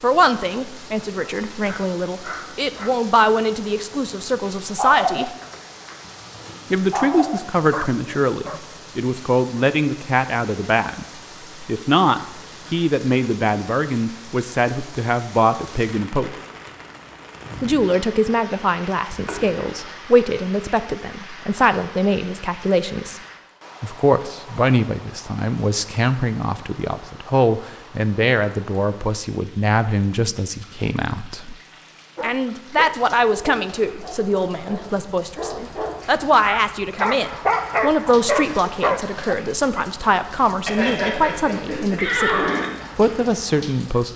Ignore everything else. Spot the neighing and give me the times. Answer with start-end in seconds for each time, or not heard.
19.1-19.6, 40.6-42.6.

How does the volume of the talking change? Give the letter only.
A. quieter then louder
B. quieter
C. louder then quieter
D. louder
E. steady
E.